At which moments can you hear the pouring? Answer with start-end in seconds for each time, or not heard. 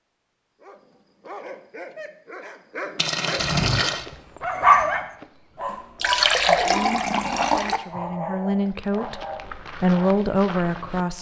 3.0-4.0, 6.0-7.8.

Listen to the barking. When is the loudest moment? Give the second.
5 s.